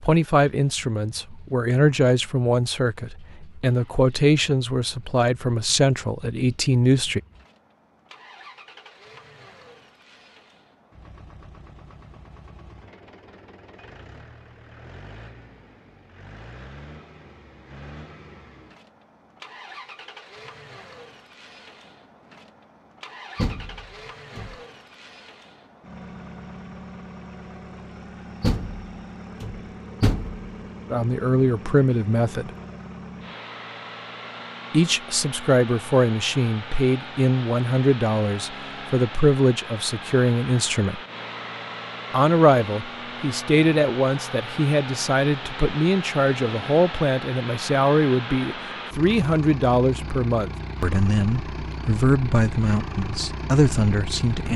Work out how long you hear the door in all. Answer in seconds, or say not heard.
3 s.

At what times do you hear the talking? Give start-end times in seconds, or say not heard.
0.0-7.2, 30.9-32.5, 34.7-41.0, 42.1-54.5.